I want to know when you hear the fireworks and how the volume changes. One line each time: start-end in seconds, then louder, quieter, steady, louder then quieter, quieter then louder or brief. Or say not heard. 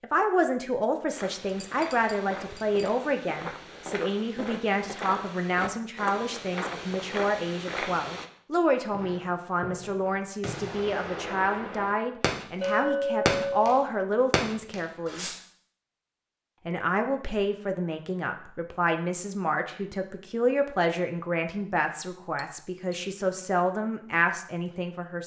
8.9-13.7 louder
14.3-15.3 brief.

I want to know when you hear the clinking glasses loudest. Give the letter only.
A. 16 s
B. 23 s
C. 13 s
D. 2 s
C.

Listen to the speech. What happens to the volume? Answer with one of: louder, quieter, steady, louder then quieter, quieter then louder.
steady.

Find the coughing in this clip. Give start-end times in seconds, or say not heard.
not heard.